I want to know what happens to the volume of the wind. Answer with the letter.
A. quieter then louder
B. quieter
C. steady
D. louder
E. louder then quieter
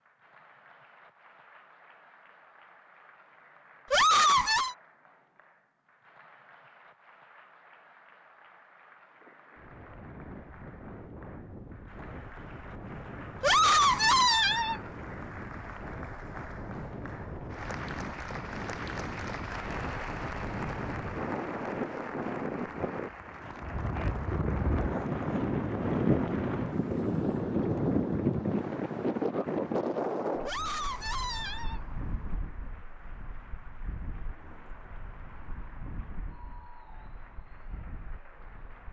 E.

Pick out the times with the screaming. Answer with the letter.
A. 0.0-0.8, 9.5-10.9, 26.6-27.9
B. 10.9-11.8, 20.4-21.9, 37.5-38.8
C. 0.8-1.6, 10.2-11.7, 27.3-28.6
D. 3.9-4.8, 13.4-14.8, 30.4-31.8
D.